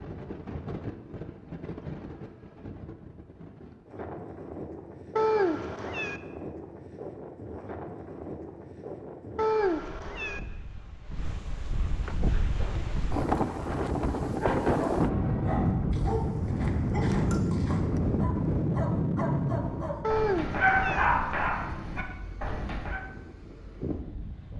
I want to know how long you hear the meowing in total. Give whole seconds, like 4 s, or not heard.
3 s.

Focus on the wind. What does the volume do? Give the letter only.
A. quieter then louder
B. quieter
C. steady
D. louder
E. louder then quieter
E.